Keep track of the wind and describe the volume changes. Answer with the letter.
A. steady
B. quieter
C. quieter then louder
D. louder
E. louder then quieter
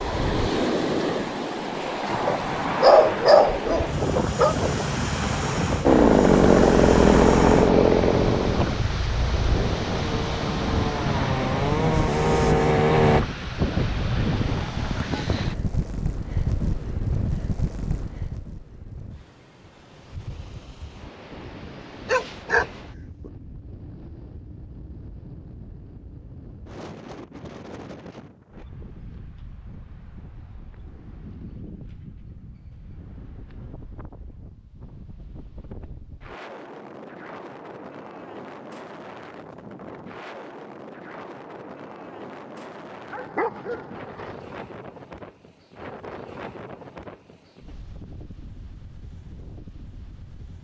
B.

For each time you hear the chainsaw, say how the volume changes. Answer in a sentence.
The chainsaw can be heard from 5.8 to 13.2 s, getting quieter then louder.